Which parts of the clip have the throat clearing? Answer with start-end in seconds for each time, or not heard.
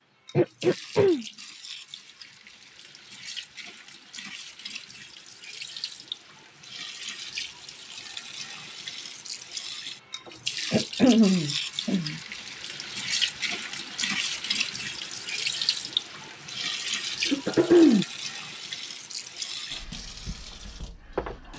0.3-1.2, 10.7-12.2, 17.2-18.1.